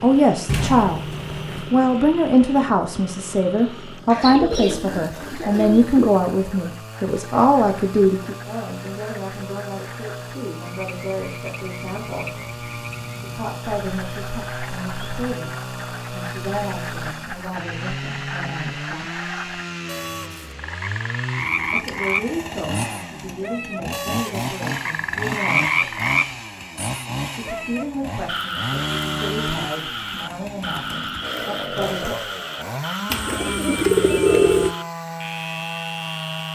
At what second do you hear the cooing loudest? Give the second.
34 s.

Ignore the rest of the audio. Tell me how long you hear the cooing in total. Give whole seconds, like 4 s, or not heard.
4 s.